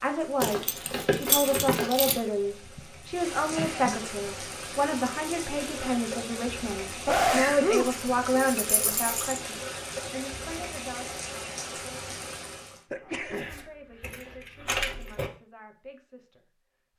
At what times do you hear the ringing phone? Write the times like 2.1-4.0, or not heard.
not heard.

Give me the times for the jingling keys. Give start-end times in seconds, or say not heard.
0.4-2.2, 7.8-9.4, 13.3-15.3.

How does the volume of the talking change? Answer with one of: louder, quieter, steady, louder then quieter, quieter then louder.
quieter.